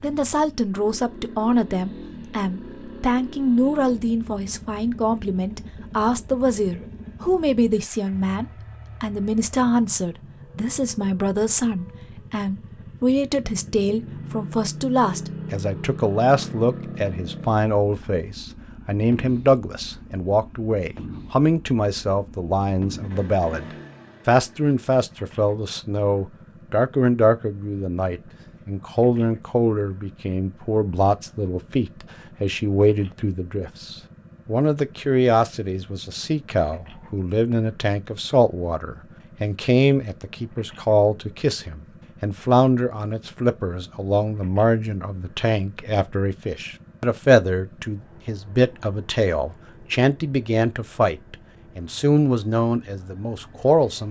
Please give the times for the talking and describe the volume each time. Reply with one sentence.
The talking can be heard from 0.0 to 23.6 s, at a steady volume; and from 24.2 to 54.0 s, at a steady volume.